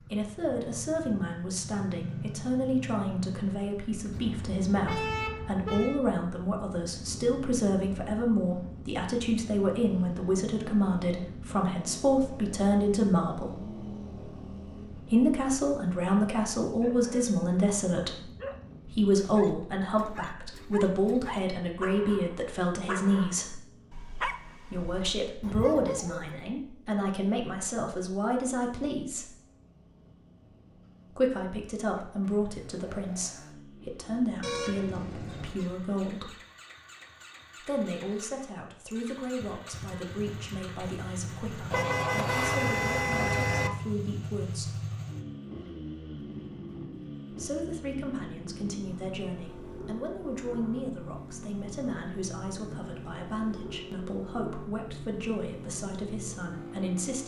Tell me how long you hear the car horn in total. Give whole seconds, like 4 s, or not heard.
5 s.